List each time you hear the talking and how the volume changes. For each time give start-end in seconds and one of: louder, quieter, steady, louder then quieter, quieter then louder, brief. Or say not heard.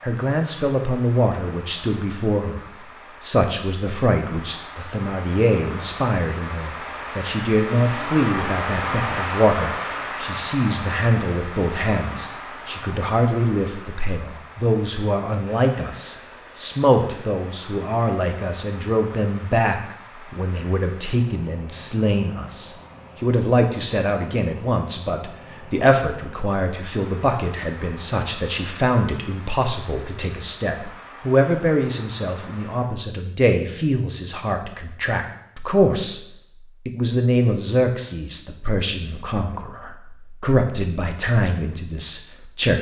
0.0-36.2 steady
36.9-42.7 quieter then louder.